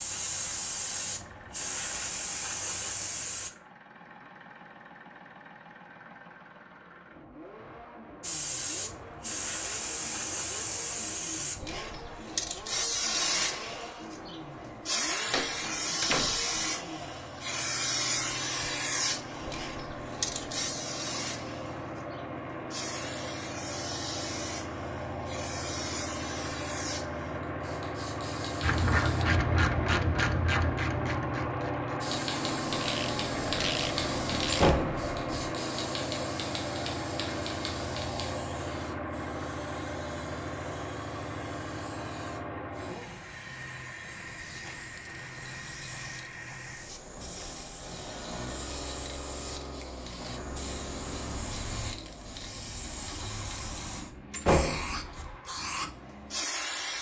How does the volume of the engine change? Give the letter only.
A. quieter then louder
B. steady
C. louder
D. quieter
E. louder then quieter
E.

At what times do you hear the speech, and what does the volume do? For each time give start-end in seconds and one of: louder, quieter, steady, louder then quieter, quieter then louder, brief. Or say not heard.
not heard.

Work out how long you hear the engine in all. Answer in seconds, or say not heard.
57 s.